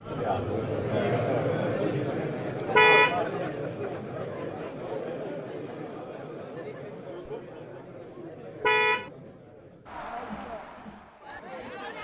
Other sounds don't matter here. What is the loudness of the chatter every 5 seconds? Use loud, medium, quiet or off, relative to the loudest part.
loud, medium, medium.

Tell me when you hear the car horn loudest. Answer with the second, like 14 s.
3 s.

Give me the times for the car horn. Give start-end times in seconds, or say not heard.
2.8-3.2, 8.6-9.1.